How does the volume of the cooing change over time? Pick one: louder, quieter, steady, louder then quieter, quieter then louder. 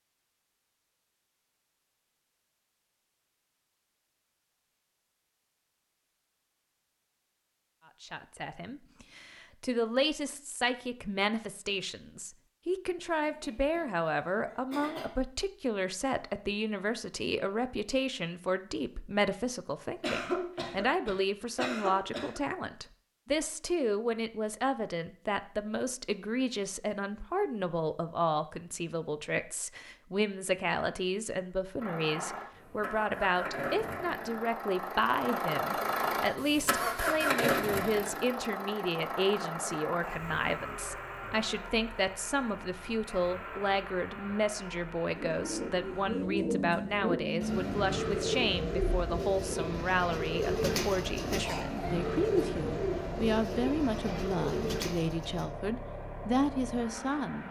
steady.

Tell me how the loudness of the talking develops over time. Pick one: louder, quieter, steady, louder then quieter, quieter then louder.
steady.